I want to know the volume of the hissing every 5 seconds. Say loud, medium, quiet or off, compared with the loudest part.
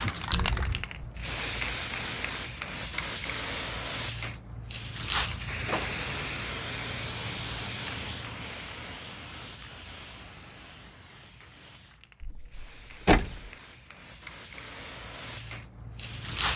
loud, loud, quiet, loud.